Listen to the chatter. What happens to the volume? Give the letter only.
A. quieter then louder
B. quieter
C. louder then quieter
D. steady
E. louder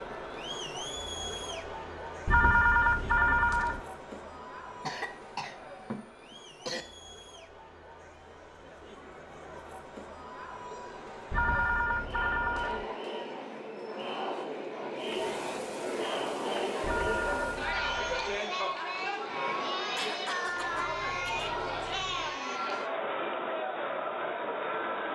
A.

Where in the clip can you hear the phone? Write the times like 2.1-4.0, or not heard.
2.2-3.8, 11.3-12.8, 16.8-18.4.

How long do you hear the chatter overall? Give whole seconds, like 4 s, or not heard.
25 s.